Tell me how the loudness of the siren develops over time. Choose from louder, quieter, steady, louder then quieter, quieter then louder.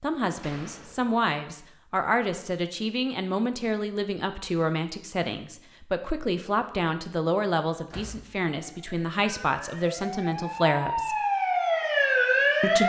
louder.